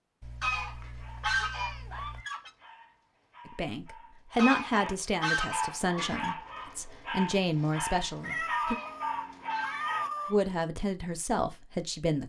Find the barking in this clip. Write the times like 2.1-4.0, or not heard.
0.8-10.3.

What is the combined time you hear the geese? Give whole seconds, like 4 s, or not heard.
6 s.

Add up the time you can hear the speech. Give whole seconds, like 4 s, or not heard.
7 s.